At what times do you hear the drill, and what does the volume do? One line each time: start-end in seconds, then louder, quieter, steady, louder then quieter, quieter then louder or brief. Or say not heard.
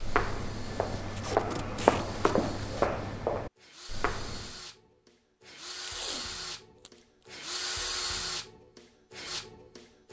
0.0-10.0 louder.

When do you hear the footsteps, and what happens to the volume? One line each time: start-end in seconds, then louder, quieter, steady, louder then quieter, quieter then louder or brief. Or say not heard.
0.0-4.6 louder then quieter.